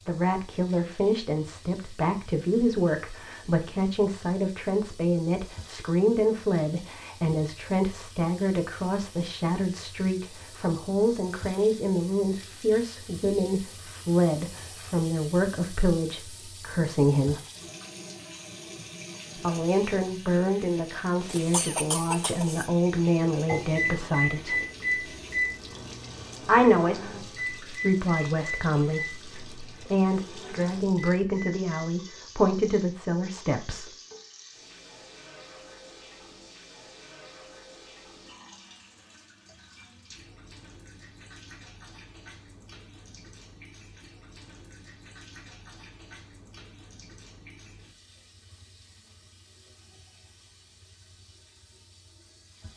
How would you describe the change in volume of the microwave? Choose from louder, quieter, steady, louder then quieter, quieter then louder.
quieter.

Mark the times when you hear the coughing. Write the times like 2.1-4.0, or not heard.
21.2-22.7.